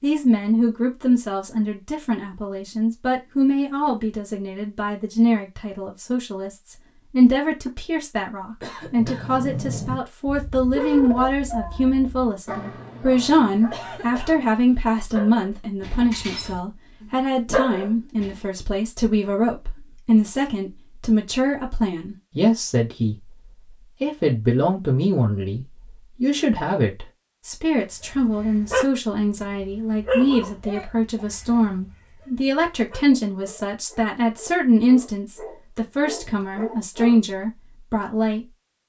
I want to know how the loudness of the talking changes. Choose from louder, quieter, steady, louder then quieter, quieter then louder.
steady.